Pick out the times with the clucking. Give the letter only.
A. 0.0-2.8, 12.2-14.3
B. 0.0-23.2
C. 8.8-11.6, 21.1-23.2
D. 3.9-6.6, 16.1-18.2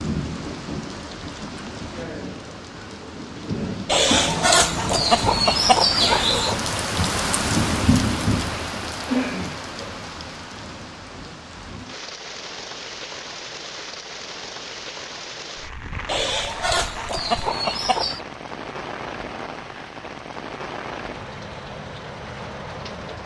D.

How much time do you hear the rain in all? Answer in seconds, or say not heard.
23 s.